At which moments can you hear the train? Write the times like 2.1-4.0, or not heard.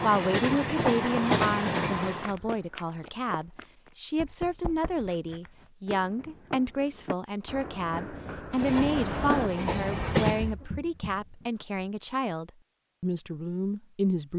0.0-2.4, 8.5-10.6.